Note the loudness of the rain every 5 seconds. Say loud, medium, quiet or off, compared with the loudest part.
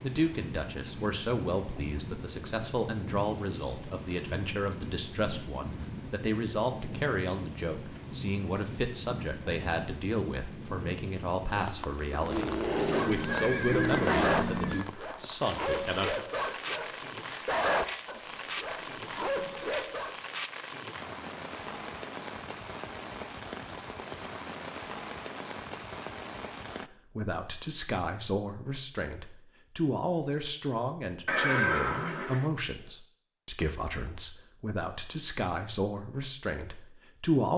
loud, loud, loud, loud, loud, loud, off, off.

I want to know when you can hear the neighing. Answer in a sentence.
You can hear the neighing from 12.2 to 14.8 s and from 31.2 to 32.5 s.